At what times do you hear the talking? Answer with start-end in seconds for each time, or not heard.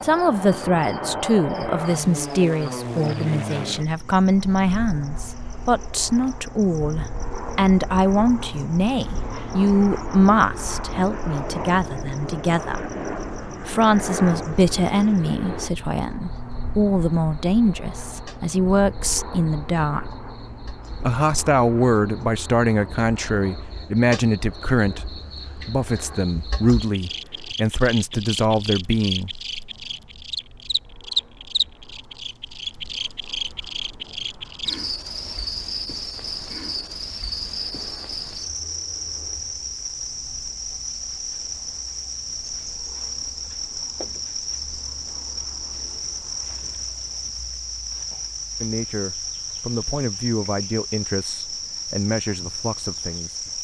0.0-12.8, 13.7-20.1, 21.0-29.3, 48.6-53.6.